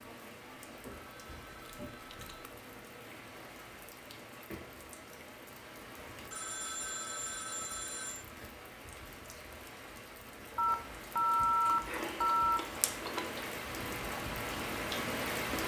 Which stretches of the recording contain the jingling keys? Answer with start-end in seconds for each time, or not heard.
not heard.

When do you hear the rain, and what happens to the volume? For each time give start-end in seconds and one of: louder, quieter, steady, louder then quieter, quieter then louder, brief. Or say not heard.
0.0-15.6 louder.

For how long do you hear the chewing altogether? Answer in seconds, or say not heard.
4 s.